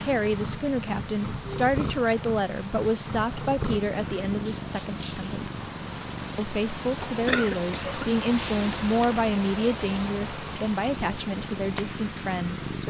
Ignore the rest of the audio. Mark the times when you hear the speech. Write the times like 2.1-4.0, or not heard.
0.0-5.5, 6.3-12.8.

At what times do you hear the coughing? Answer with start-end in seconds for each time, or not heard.
7.0-8.1.